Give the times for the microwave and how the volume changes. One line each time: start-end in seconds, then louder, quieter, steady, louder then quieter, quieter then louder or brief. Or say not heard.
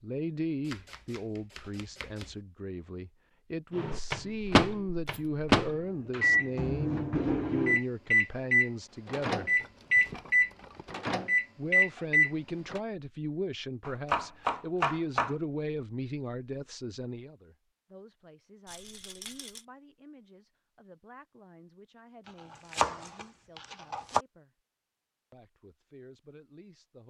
3.8-12.8 steady.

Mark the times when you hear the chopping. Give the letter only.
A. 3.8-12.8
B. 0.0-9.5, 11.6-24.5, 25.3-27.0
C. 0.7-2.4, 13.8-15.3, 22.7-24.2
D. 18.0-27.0
C.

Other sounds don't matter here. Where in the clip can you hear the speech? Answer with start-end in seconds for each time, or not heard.
0.0-9.5, 11.6-24.5, 25.3-27.0.